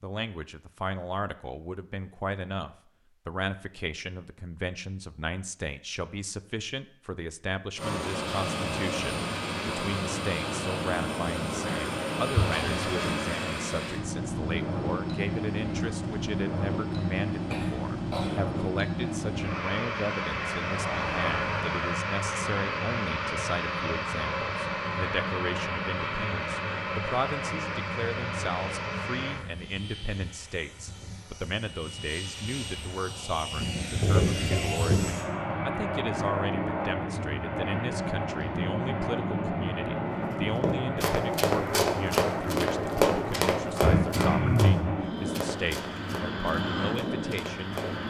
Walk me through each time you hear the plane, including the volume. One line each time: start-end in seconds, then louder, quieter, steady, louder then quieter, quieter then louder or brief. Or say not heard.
7.8-48.0 steady.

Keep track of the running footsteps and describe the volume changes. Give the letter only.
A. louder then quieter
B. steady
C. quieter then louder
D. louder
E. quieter
E.